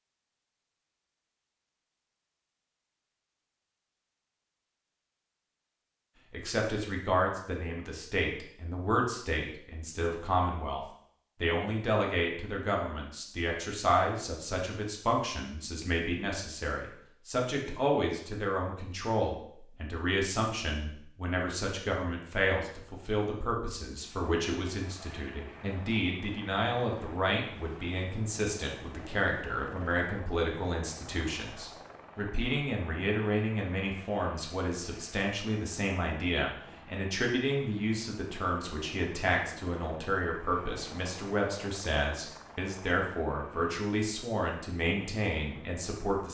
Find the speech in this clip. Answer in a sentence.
You can hear the speech from 6.3 to 46.2 s.